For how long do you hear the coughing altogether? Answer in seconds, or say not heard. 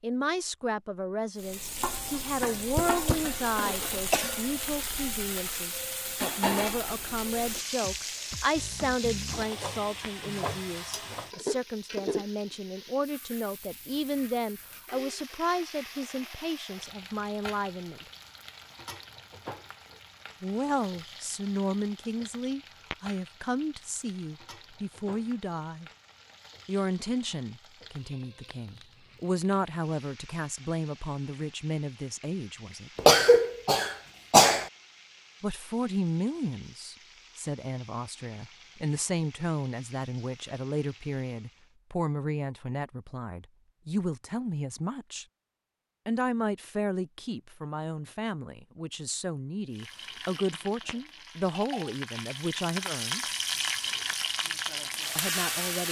3 s.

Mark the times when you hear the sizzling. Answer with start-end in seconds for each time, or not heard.
1.4-41.8, 49.7-55.8.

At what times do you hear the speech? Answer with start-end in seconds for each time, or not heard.
0.0-18.1, 20.4-25.9, 26.6-32.9, 35.4-45.2, 46.0-53.2, 55.1-55.8.